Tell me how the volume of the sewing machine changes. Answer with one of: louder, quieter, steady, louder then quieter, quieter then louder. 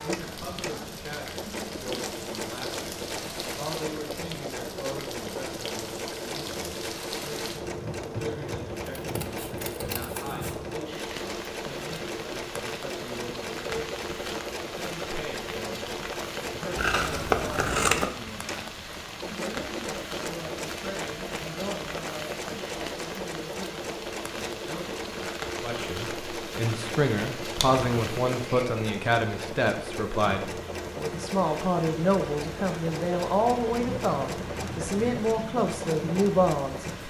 steady.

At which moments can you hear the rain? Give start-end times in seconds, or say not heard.
0.0-37.0.